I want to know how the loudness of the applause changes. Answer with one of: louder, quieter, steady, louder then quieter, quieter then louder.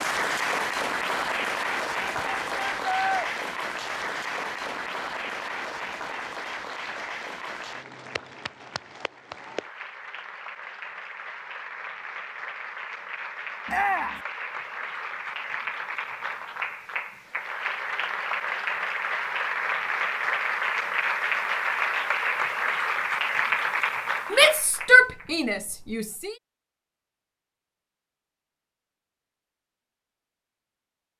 quieter then louder.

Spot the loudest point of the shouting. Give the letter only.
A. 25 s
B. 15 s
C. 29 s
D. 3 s
A.